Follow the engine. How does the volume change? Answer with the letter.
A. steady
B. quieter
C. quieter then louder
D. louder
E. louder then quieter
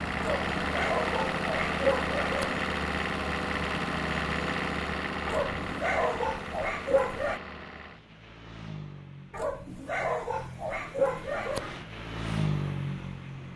C.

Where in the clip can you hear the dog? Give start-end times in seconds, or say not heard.
0.1-2.6, 5.2-7.4, 9.3-11.8.